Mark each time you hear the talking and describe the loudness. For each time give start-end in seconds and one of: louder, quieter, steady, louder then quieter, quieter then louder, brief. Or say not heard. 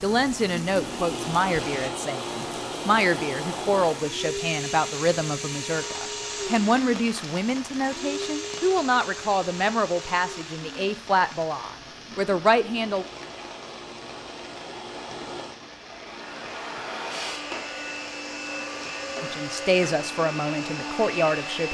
0.0-13.1 steady
19.2-21.6 brief.